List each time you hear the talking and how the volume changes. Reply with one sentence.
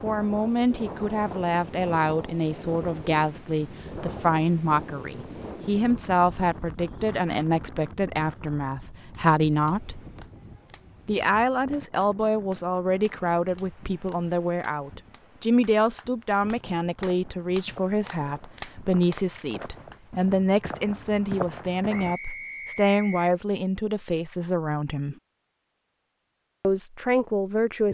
The talking can be heard from 0.0 to 10.0 s, at a steady volume; from 11.1 to 25.1 s, at a steady volume; and briefly from 26.6 to 27.8 s.